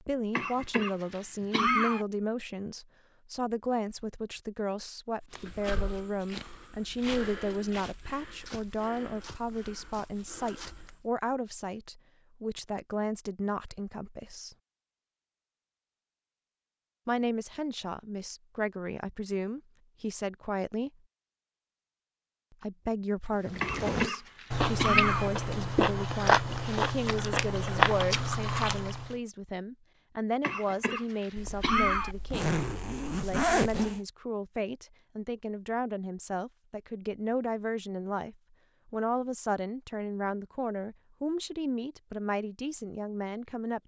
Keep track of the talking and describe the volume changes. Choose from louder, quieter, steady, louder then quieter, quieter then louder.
steady.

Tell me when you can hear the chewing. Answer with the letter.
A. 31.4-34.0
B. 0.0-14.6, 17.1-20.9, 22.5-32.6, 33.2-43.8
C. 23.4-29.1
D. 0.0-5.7
C.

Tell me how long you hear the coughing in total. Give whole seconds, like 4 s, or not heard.
5 s.